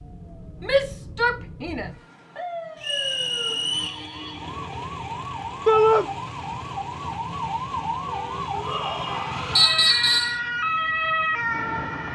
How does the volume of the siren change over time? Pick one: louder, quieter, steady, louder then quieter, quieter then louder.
louder.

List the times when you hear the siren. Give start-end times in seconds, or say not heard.
0.0-12.1.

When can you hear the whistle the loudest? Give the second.
10 s.